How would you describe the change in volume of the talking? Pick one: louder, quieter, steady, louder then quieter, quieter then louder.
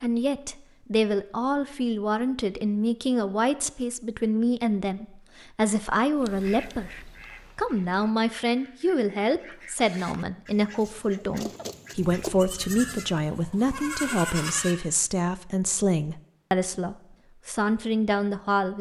steady.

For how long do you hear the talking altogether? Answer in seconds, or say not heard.
19 s.